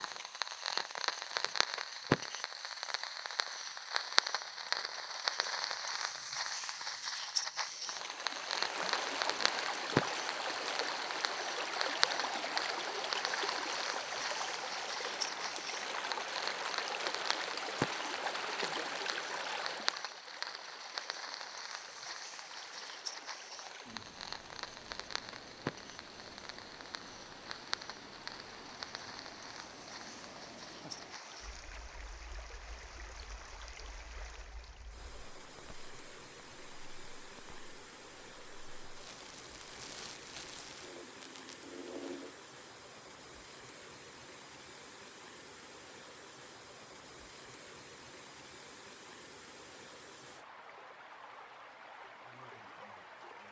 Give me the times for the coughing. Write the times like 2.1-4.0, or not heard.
not heard.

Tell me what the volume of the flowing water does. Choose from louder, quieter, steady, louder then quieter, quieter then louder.
quieter.